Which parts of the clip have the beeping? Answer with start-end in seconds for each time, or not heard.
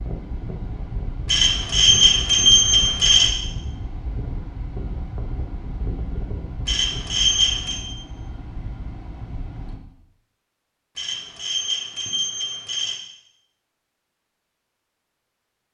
1.2-3.3, 6.7-7.8, 10.9-12.9.